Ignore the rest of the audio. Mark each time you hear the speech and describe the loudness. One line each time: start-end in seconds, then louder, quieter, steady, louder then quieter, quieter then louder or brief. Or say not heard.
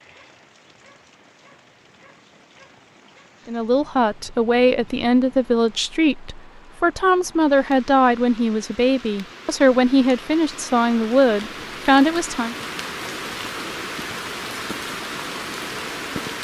3.5-12.6 steady.